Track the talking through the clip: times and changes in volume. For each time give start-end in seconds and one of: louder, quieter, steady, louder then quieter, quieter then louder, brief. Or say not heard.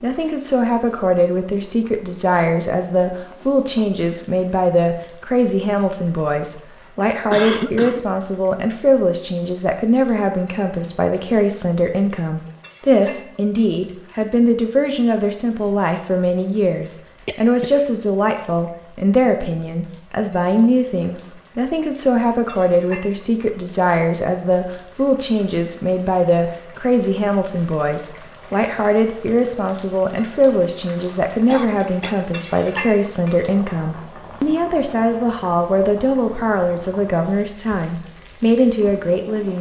0.0-39.5 steady.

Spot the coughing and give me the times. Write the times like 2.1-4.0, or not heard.
7.3-8.1, 17.2-17.9, 31.4-32.1.